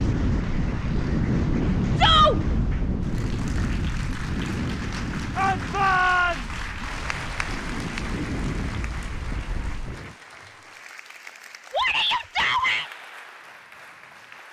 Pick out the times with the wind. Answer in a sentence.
The wind can be heard from 0.0 to 10.2 s.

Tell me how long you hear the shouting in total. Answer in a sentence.
The shouting can be heard for 3 seconds in total.